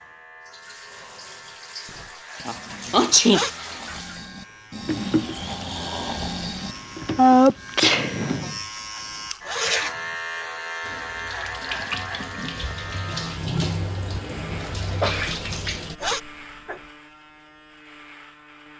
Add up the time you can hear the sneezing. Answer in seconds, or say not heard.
4 s.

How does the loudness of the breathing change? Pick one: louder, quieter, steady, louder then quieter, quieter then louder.
louder.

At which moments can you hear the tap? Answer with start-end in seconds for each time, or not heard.
0.0-8.7, 10.8-15.9.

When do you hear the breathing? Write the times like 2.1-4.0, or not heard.
0.8-6.8.